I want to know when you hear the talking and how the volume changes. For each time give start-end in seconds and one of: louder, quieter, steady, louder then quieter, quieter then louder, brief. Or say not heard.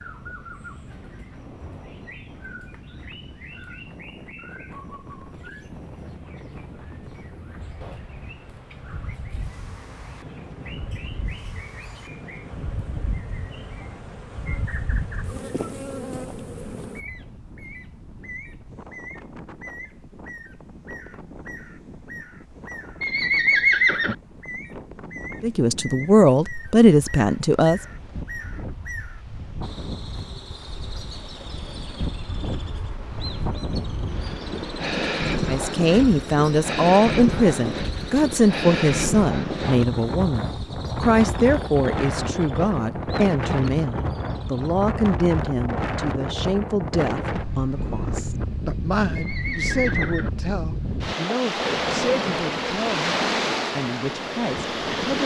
25.4-27.8 brief
35.5-55.2 quieter.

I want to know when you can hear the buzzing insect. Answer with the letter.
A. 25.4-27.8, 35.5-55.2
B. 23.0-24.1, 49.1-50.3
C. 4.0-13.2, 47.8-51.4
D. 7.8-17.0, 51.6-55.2
D.